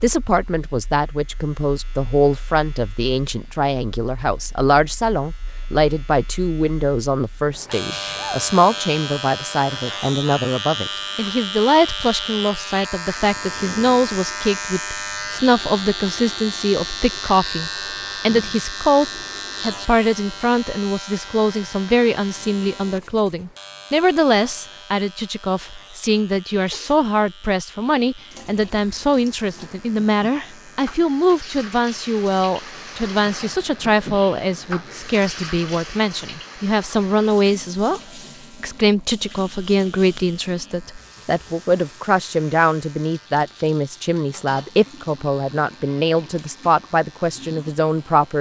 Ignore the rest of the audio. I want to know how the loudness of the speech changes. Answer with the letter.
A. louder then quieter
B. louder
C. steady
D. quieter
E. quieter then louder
C.